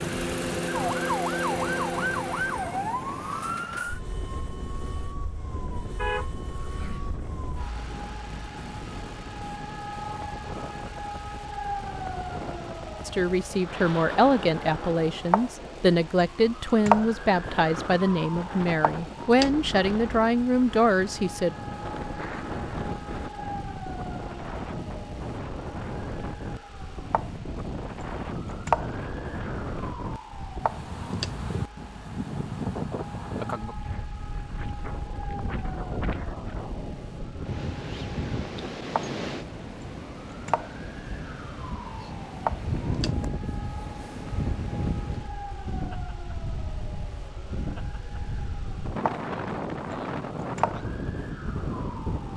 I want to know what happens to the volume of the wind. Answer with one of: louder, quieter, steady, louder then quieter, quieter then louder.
louder.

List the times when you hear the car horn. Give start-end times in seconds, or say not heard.
6.0-7.2.